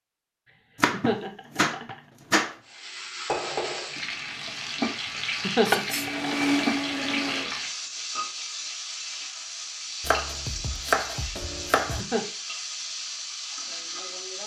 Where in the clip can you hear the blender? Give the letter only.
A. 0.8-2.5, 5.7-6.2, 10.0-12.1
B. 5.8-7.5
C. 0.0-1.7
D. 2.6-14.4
B.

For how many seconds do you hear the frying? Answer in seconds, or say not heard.
12 s.